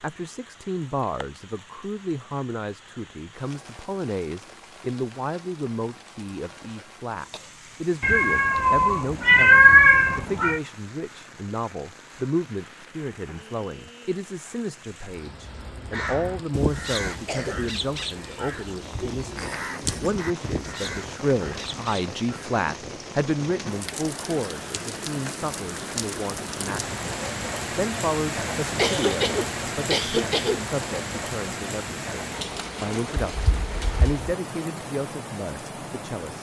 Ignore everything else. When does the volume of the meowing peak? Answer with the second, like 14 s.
10 s.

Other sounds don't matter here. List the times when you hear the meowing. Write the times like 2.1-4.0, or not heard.
8.0-10.6, 19.4-20.1, 33.1-34.1.